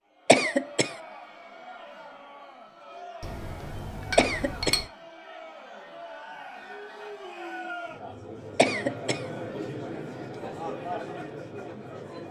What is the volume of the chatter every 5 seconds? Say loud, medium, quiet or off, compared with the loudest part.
medium, loud, loud.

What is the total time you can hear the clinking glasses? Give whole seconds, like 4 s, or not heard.
2 s.